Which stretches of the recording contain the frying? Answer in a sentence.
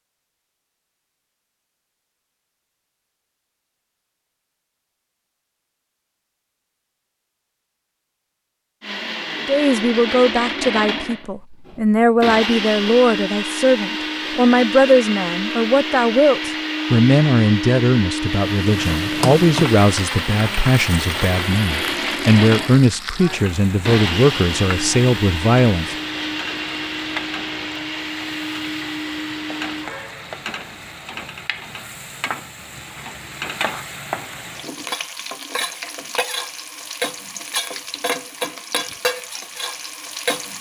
You can hear the frying from 18.4 to 40.5 s.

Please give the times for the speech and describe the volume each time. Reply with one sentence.
The speech can be heard from 9.4 to 25.9 s, at a steady volume.